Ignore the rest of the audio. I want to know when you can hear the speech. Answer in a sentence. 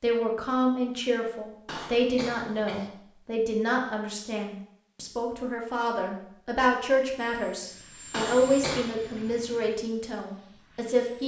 You can hear the speech from 0.0 to 11.2 s.